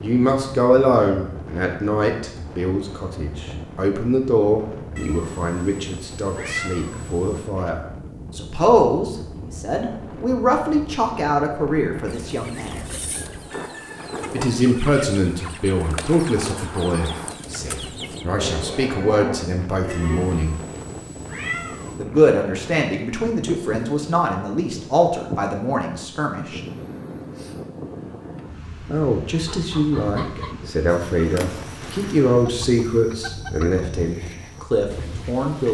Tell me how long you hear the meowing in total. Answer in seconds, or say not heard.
5 s.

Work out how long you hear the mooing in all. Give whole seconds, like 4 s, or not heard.
2 s.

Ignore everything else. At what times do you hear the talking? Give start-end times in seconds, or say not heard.
0.0-12.9, 14.3-20.6, 21.9-26.6, 28.9-35.6.